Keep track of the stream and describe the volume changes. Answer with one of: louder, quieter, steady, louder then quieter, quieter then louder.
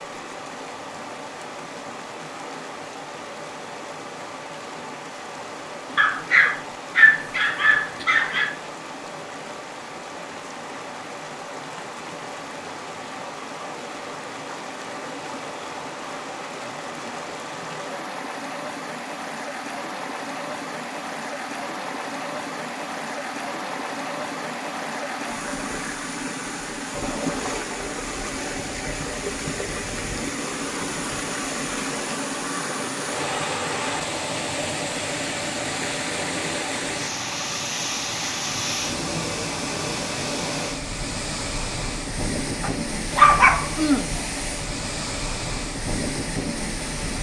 louder.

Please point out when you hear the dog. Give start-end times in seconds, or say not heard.
6.0-8.5, 42.6-44.1.